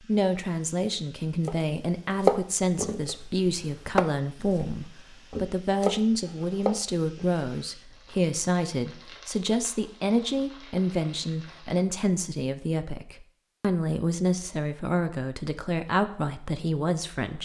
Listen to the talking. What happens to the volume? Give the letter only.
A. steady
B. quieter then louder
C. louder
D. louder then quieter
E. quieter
A.